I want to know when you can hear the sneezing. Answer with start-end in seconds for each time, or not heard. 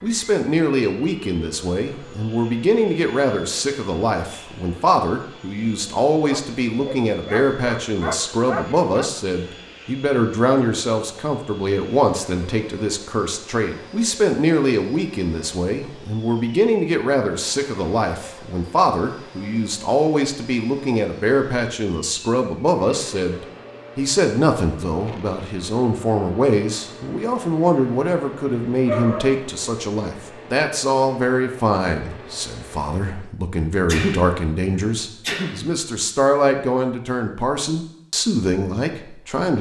33.9-35.6.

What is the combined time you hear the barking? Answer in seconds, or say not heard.
4 s.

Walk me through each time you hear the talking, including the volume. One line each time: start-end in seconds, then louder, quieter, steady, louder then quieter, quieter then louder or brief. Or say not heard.
0.0-39.5 steady.